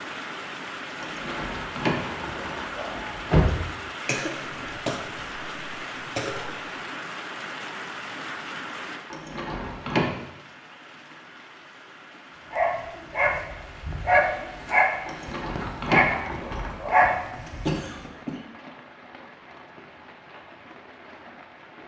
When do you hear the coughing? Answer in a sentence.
The coughing can be heard from 4.0 to 6.7 s and from 17.6 to 18.4 s.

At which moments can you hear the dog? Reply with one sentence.
You can hear the dog from 12.5 to 17.9 s.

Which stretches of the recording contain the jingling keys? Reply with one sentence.
The jingling keys can be heard from 1.0 to 3.5 s, from 9.1 to 10.1 s and from 15.1 to 17.1 s.